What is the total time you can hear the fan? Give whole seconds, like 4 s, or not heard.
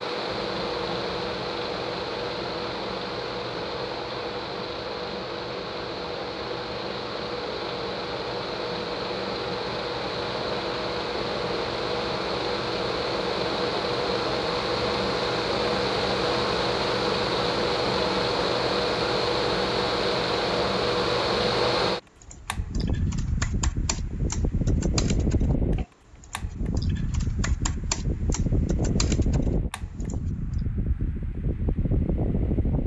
33 s.